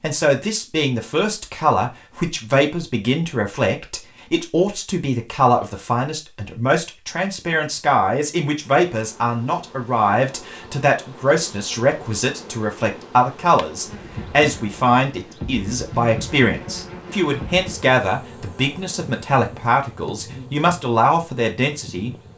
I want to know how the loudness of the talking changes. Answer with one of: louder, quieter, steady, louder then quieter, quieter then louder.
steady.